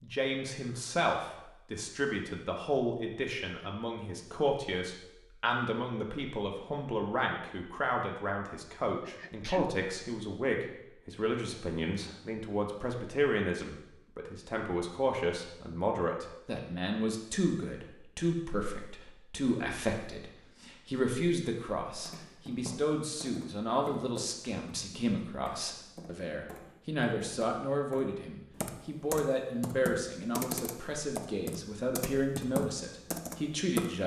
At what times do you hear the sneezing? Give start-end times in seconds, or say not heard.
9.0-9.8.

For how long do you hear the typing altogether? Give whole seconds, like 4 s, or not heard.
12 s.